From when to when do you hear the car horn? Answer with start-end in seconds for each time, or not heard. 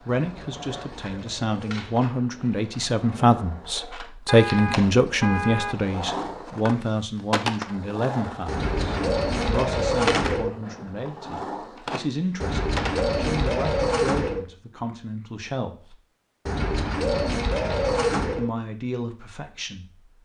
4.2-5.8.